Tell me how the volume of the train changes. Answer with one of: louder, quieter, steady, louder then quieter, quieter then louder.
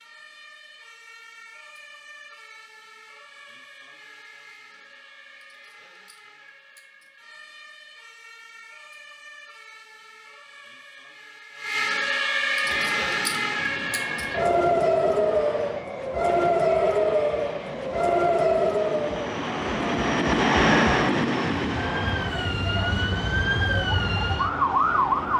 louder then quieter.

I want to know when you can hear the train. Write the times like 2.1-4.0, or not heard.
12.6-25.3.